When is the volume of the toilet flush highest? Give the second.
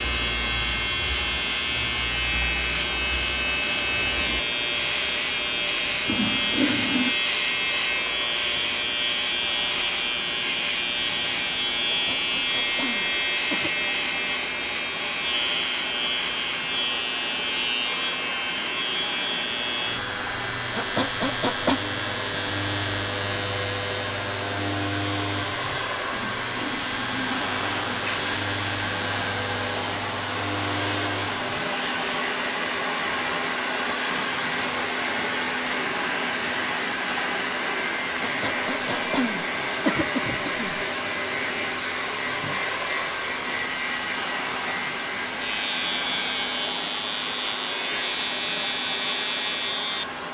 7 s.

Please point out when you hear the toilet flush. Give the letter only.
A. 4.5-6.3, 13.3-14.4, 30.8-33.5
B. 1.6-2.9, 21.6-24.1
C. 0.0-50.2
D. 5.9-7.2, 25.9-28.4
D.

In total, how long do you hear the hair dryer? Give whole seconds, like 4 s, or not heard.
50 s.